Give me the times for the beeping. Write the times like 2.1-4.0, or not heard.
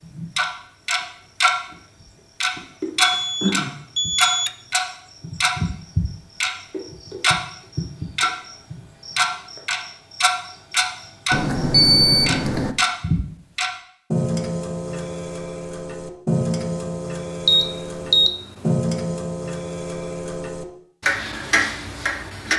3.0-4.5, 11.3-12.8, 17.4-18.7.